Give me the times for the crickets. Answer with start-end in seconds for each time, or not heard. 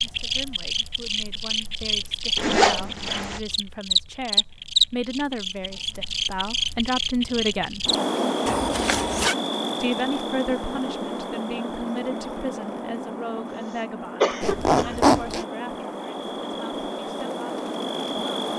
0.0-18.5.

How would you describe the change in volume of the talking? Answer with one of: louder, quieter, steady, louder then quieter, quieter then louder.
louder then quieter.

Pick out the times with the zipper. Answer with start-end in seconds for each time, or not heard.
2.4-3.4, 8.4-9.3, 14.4-15.4.